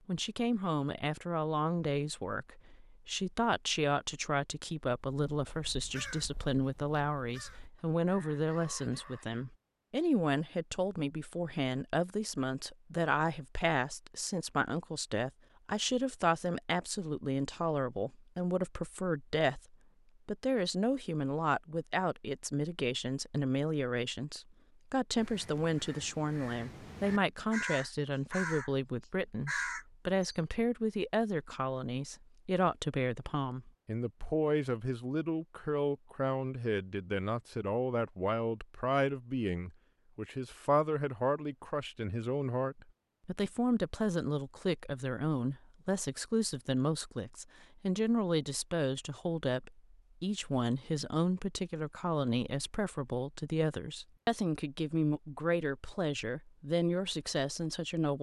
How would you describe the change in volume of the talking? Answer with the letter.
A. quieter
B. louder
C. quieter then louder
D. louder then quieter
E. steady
E.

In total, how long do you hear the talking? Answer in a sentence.
You can hear the talking for 58 seconds altogether.